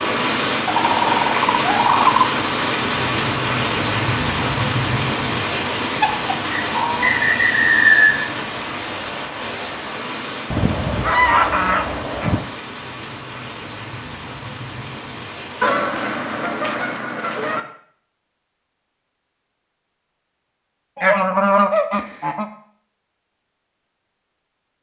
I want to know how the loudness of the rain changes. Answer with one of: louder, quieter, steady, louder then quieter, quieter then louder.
quieter.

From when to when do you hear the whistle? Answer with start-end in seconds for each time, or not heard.
6.5-8.2.